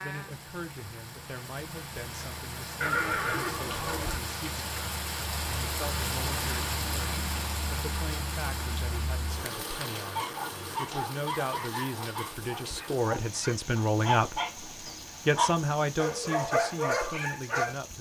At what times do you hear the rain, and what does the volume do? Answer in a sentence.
The rain can be heard from 0.0 to 17.9 s, getting louder then quieter.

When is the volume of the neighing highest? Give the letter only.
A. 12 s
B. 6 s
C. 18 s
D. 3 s
D.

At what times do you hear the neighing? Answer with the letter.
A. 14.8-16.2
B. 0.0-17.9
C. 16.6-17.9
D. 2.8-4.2
D.